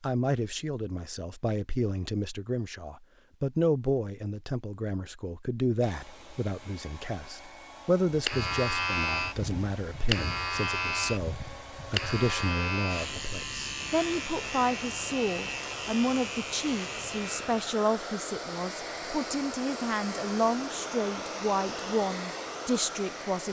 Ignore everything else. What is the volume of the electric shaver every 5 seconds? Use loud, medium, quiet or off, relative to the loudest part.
off, loud, loud, medium, off.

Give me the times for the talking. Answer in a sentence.
The talking can be heard from 0.0 to 23.4 s.